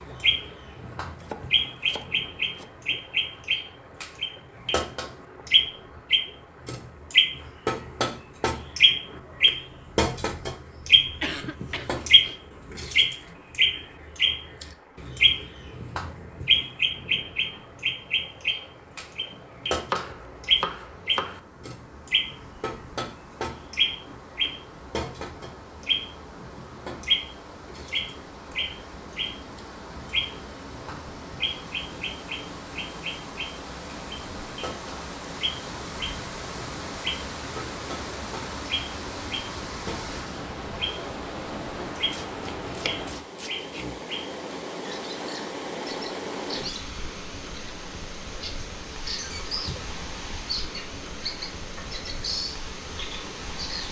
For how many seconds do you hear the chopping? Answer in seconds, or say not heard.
5 s.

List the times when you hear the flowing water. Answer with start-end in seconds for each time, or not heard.
0.0-53.8.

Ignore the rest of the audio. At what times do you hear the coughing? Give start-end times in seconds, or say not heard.
11.2-12.3.